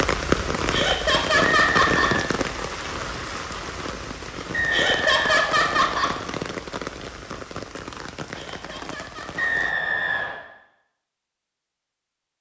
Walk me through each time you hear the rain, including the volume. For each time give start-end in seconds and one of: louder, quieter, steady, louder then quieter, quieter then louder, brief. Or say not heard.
0.0-9.8 quieter.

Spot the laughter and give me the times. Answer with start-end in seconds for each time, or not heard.
0.7-2.1, 4.7-6.2, 8.3-9.5.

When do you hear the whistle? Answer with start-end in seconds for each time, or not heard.
1.4-2.2, 4.5-6.2, 9.3-10.4.